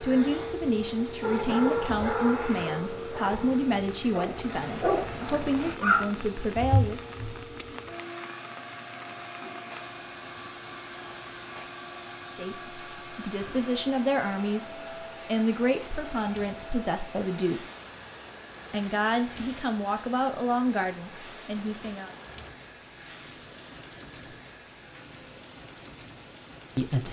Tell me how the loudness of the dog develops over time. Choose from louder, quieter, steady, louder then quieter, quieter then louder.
quieter then louder.